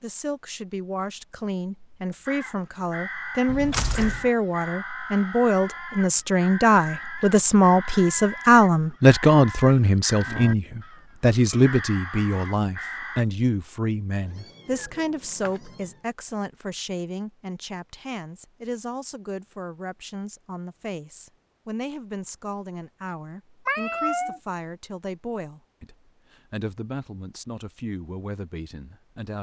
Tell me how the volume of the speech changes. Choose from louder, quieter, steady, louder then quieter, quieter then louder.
louder then quieter.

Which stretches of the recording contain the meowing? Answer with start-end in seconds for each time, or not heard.
3.5-4.2, 14.2-15.9, 23.6-24.4.